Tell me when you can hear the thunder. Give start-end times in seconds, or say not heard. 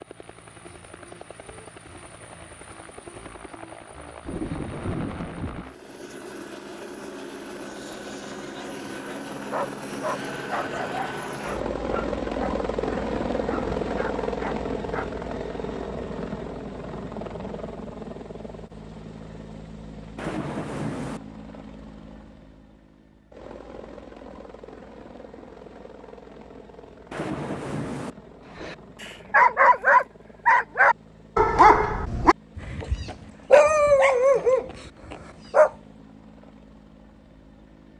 4.2-5.7, 20.1-21.2, 27.1-28.1.